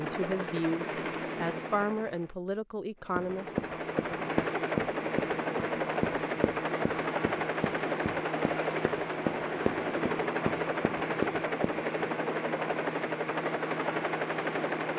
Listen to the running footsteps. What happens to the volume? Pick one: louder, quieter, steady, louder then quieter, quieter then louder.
quieter then louder.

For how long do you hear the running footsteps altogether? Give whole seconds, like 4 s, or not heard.
9 s.